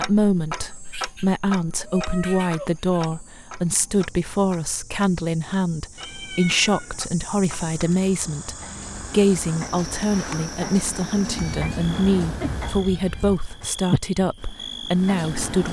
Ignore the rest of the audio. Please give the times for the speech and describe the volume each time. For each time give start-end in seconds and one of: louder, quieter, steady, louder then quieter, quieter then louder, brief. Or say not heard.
0.0-15.6 steady.